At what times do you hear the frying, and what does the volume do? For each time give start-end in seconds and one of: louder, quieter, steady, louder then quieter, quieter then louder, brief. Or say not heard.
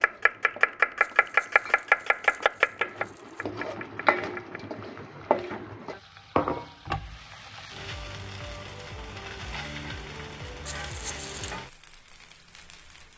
0.0-13.1 louder then quieter.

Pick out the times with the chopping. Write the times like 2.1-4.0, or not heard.
0.0-4.6.